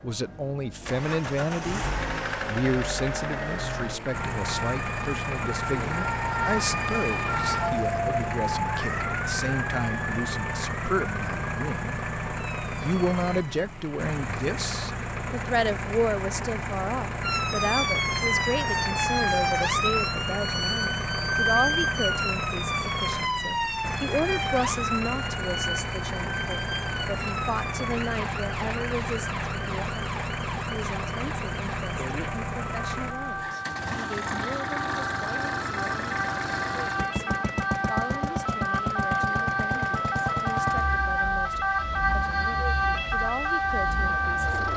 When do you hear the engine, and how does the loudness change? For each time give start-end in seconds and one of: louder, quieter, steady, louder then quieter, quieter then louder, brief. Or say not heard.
0.1-44.7 steady.